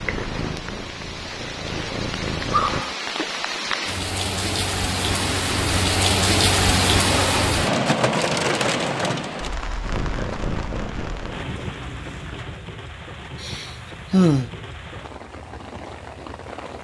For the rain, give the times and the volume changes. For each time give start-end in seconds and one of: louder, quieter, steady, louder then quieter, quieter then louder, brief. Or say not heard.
0.0-16.7 louder then quieter.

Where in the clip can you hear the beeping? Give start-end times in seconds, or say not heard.
not heard.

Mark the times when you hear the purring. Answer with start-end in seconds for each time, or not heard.
0.0-2.9, 9.8-12.4.